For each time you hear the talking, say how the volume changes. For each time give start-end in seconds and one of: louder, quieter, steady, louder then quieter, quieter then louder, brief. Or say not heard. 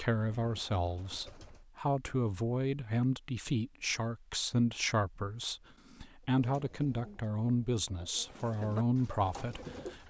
0.0-10.0 steady.